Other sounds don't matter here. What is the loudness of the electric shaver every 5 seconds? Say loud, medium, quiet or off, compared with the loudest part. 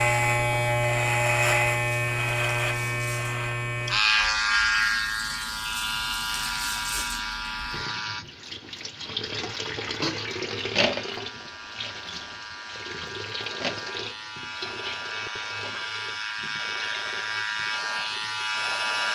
loud, medium, quiet, medium.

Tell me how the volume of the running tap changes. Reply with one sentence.
The loudness of the running tap goes up, then down.